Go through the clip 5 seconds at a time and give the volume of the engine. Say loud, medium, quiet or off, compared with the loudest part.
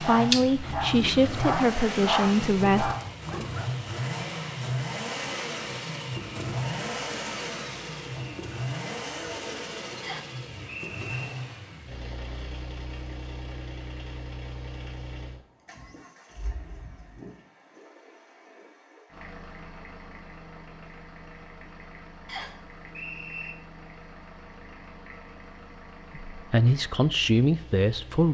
loud, loud, medium, quiet, quiet, quiet.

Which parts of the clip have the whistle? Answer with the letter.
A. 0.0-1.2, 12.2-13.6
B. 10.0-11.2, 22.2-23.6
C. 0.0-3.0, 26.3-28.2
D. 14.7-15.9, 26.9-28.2
B.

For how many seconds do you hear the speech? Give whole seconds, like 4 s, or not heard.
5 s.